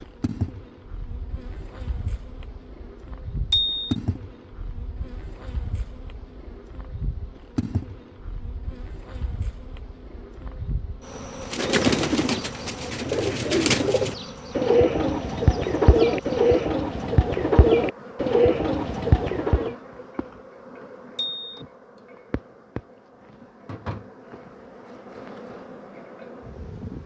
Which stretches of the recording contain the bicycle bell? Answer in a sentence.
The bicycle bell can be heard from 3.5 to 4.0 s and from 21.1 to 21.6 s.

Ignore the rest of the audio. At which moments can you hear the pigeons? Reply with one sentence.
The pigeons can be heard from 11.4 to 19.8 s.